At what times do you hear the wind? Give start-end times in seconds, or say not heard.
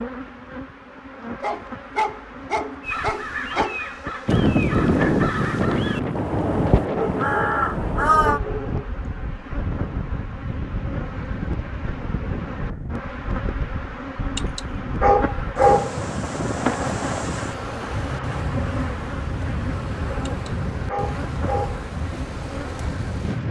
4.2-23.4.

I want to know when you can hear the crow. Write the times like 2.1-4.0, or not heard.
2.8-8.4.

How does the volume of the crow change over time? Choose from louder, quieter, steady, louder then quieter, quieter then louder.
louder.